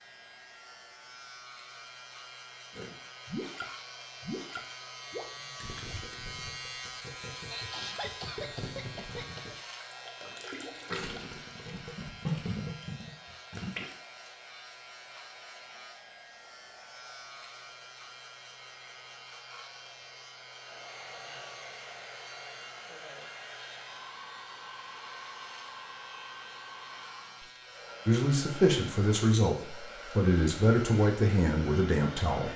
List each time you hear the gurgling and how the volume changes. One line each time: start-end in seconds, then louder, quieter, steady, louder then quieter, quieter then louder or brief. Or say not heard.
2.8-13.9 quieter then louder.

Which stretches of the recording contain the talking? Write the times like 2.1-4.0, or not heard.
28.1-32.5.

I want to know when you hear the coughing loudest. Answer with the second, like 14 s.
8 s.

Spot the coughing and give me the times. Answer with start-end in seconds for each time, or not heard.
7.0-9.6.